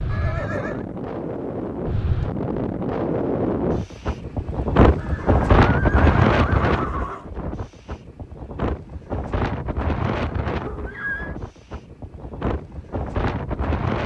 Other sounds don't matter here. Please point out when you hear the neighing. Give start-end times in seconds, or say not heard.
0.1-0.8, 5.0-7.3, 10.6-11.3.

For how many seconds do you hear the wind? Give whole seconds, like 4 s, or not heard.
14 s.